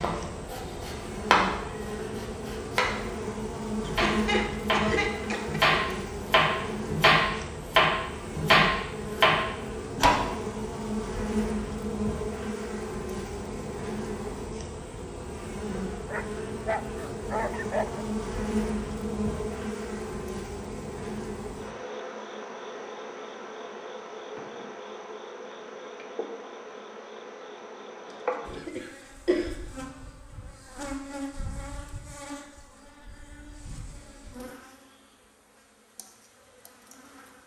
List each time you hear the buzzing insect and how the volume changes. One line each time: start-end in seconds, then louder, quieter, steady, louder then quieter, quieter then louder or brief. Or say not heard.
0.0-37.4 quieter.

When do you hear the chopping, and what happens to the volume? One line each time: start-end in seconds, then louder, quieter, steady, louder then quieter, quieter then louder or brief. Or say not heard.
0.0-10.2 louder.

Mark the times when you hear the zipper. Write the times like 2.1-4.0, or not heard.
not heard.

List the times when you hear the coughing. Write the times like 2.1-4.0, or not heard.
3.9-5.7, 28.1-29.6.